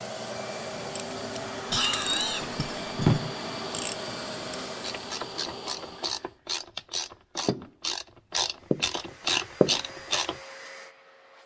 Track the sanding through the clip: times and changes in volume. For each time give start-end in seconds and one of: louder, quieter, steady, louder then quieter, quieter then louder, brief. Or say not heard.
not heard.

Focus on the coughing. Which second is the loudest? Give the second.
2 s.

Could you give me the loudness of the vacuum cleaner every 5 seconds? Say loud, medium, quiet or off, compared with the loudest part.
loud, medium, medium.